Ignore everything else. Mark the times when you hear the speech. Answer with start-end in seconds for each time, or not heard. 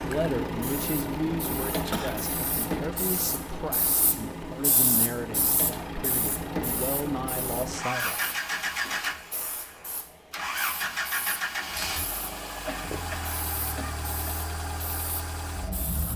0.0-8.2.